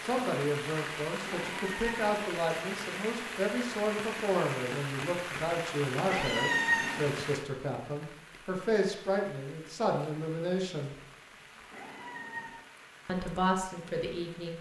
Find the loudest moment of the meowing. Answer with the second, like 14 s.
7 s.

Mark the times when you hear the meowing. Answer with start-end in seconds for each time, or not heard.
1.2-2.2, 6.0-7.0, 11.7-12.6.